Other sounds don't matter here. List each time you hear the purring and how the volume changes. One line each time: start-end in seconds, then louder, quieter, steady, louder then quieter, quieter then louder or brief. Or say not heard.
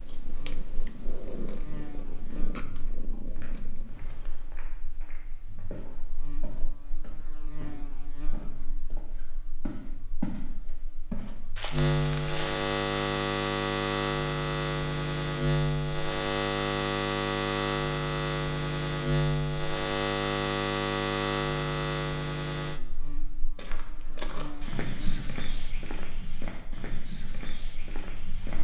0.0-4.6 quieter.